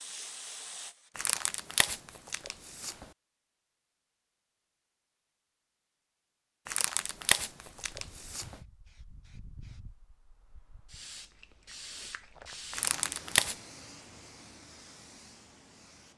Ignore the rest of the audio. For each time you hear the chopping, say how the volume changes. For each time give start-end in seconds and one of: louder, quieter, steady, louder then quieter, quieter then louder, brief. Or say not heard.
not heard.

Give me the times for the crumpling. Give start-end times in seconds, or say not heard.
1.1-3.0, 6.7-8.6, 12.7-13.6.